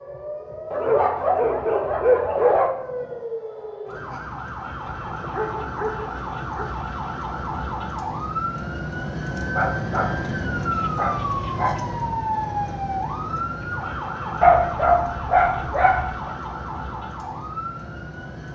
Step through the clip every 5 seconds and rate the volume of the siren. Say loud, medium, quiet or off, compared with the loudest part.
medium, loud, loud, medium.